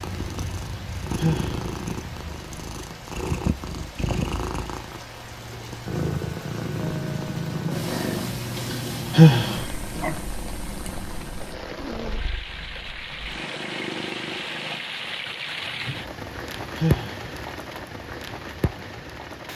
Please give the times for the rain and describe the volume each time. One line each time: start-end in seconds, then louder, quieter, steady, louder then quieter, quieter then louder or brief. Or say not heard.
0.0-19.5 louder.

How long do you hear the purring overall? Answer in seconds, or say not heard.
15 s.